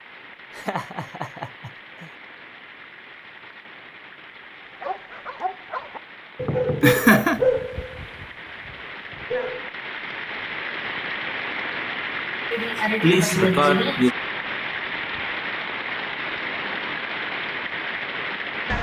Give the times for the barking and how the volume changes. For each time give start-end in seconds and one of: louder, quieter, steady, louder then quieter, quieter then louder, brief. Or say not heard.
4.8-9.7 louder then quieter.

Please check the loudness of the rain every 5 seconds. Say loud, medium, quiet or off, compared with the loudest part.
quiet, medium, loud, loud.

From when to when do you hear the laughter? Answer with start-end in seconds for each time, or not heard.
0.6-2.1, 6.8-7.4, 12.5-14.2.